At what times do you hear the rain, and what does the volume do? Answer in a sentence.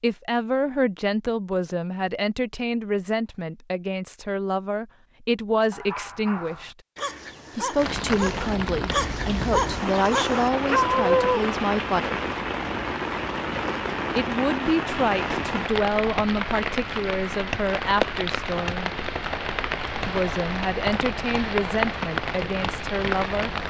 The rain can be heard from 7.8 to 23.6 s, at a steady volume.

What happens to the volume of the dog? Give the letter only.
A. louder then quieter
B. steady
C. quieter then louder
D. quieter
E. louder
E.